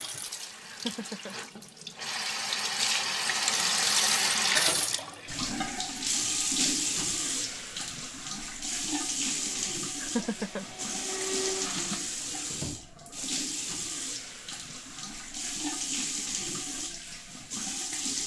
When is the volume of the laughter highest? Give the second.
10 s.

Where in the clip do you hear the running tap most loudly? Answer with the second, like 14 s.
4 s.